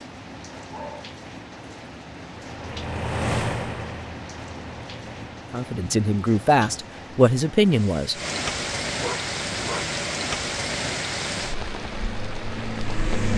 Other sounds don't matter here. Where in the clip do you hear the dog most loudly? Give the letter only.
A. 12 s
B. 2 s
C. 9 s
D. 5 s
C.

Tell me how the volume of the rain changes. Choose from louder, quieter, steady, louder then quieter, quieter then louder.
louder.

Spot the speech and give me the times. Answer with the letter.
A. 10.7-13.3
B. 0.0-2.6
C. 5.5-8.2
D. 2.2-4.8
C.